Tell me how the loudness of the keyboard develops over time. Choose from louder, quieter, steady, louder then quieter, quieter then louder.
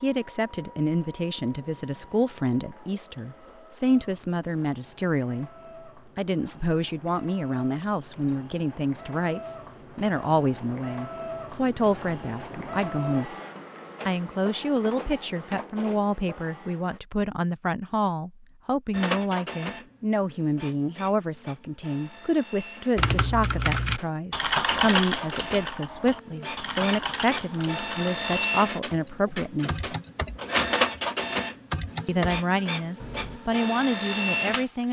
quieter then louder.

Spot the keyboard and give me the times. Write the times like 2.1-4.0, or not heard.
22.9-33.4.